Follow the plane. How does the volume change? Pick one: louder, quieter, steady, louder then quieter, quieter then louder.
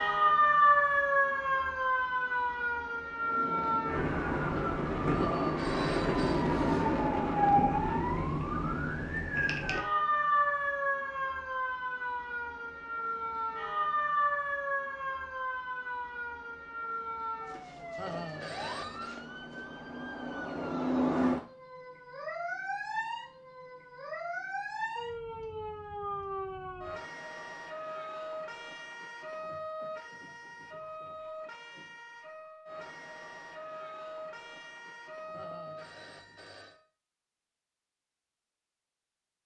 louder then quieter.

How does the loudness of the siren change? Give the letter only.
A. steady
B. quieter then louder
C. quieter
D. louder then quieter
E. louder
C.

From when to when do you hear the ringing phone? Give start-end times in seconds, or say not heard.
5.1-6.5, 17.9-19.1, 35.3-36.8.